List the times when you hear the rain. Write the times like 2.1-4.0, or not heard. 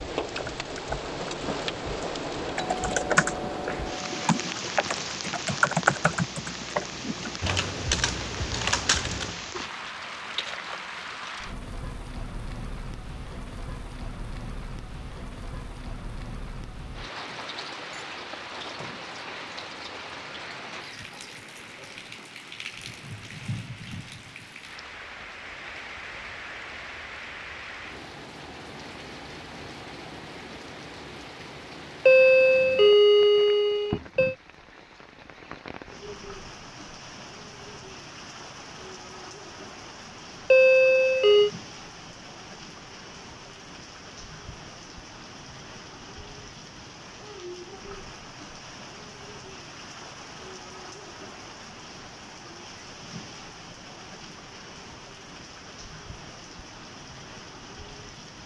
0.0-58.4.